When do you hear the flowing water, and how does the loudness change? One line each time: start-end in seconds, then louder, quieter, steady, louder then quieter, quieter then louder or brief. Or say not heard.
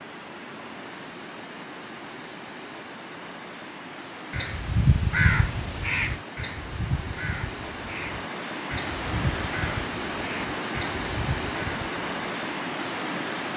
0.0-13.5 louder.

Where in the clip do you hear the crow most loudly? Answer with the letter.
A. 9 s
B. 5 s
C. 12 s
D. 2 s
B.